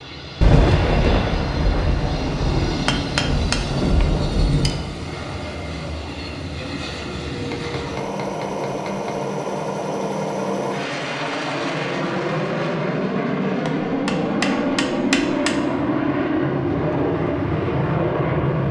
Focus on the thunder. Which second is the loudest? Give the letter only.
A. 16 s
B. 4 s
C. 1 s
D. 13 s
C.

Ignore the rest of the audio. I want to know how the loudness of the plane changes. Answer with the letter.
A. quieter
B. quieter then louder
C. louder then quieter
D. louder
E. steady
D.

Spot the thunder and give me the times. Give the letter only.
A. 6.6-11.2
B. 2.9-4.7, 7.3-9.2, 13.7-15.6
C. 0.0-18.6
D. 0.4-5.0
D.